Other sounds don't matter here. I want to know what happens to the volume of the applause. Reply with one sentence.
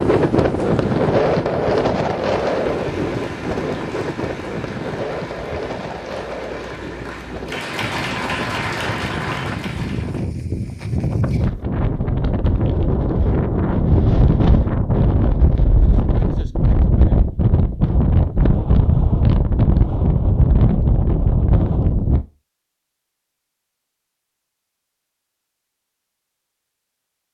The volume of the applause goes up.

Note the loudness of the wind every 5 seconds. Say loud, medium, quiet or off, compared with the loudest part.
loud, medium, loud, loud, loud, off.